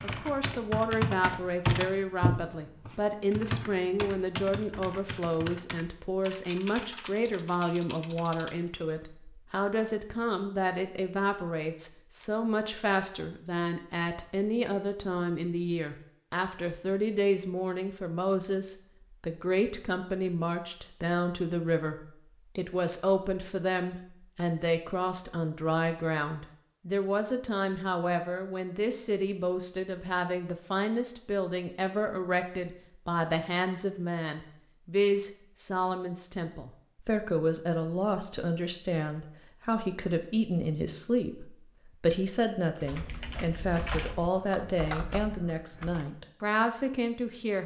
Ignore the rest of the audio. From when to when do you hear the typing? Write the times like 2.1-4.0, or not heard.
0.0-8.6, 42.8-46.1.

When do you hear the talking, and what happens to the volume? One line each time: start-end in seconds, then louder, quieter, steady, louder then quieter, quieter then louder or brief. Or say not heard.
0.0-47.6 steady.